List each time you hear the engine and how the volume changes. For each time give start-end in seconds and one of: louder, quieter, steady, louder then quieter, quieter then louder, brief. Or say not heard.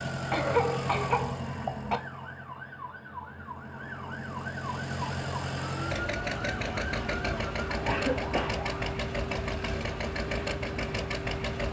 0.0-11.6 quieter then louder.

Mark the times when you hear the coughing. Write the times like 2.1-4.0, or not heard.
0.3-2.0, 7.8-8.7.